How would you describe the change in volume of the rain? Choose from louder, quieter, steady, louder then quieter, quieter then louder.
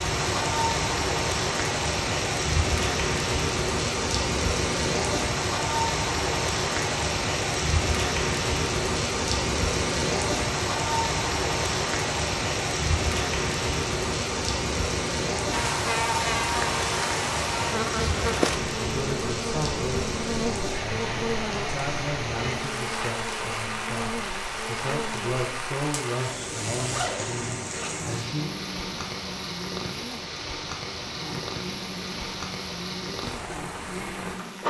quieter.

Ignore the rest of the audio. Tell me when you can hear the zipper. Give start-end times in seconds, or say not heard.
26.7-28.1.